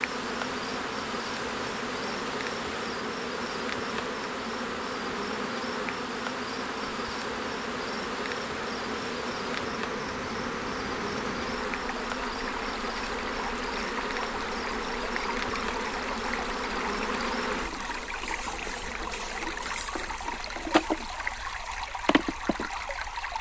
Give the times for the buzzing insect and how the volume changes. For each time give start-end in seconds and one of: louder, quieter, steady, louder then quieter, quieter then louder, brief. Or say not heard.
0.0-23.3 steady.